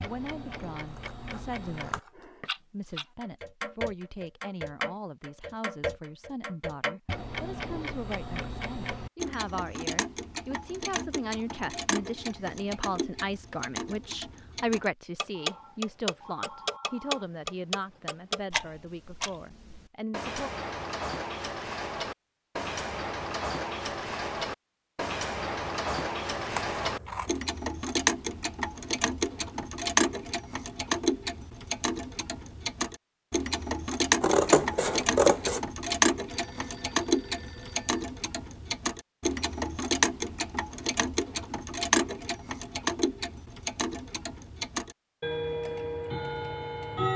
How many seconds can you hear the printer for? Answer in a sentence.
You can't hear the printer here.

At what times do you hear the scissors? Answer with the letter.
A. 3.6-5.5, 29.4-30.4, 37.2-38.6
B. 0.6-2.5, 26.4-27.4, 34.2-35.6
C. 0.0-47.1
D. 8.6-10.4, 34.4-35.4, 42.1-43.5
B.